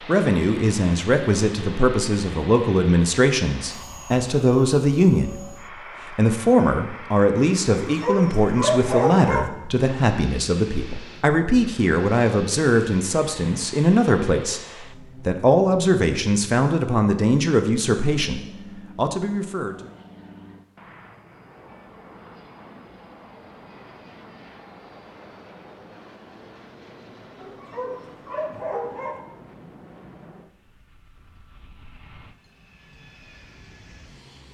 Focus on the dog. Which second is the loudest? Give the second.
9 s.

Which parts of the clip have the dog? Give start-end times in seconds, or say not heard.
7.8-9.5, 27.4-29.2.